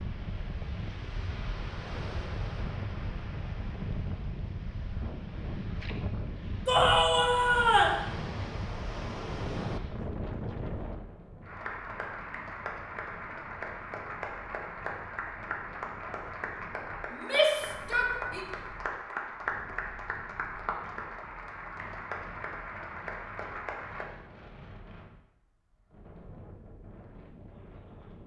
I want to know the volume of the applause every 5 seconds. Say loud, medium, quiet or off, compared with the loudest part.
off, off, loud, loud, loud, off.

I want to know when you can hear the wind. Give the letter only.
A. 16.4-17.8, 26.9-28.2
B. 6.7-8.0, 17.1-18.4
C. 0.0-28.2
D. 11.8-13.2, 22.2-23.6
C.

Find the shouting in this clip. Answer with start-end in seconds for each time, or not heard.
6.7-8.0, 17.1-18.4.